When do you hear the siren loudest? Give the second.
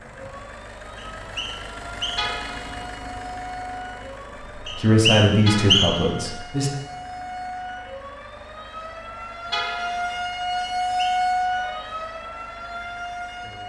11 s.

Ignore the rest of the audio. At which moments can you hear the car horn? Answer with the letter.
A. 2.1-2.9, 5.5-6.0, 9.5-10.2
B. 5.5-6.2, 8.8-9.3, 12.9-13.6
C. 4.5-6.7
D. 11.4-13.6
A.